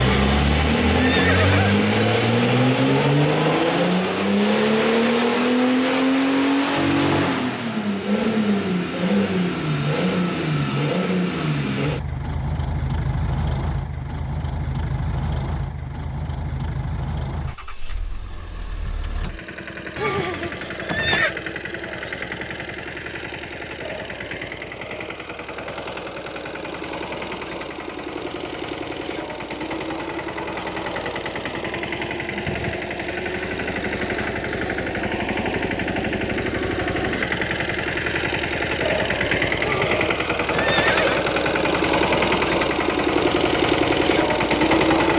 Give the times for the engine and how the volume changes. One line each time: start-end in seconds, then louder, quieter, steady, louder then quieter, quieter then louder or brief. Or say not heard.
0.0-45.1 quieter then louder.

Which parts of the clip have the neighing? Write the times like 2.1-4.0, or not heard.
0.0-1.8, 19.9-21.4, 39.6-41.2.